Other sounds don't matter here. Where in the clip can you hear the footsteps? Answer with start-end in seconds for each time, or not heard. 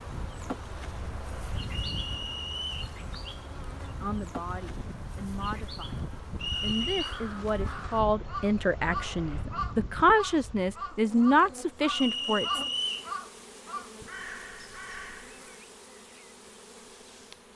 not heard.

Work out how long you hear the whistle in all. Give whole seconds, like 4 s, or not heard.
3 s.